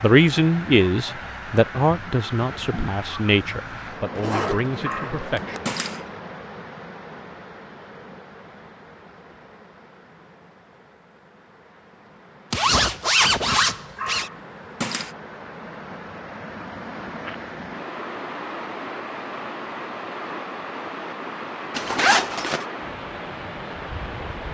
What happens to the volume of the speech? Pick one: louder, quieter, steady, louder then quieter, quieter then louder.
quieter.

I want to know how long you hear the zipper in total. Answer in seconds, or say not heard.
4 s.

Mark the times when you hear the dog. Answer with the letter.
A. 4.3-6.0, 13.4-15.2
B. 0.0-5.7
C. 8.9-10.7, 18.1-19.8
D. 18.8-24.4
A.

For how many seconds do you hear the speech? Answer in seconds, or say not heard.
6 s.